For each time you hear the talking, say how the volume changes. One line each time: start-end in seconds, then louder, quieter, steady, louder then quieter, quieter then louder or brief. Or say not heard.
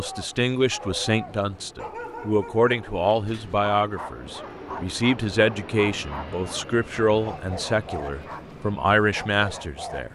0.0-10.1 steady.